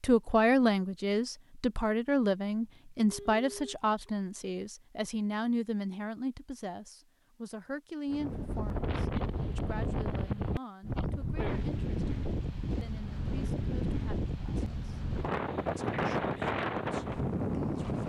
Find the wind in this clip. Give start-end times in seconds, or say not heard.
8.1-18.0.